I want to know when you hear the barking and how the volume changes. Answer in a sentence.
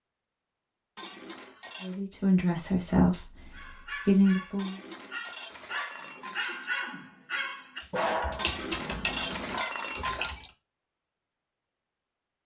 The barking can be heard from 3.5 to 10.3 s, getting louder then quieter.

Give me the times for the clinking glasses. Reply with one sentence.
The clinking glasses can be heard from 0.9 to 2.0 s, from 4.5 to 6.7 s and from 8.3 to 10.5 s.